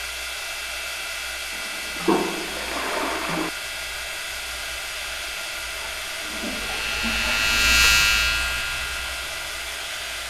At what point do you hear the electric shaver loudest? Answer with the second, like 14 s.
8 s.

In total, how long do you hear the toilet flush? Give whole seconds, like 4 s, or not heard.
4 s.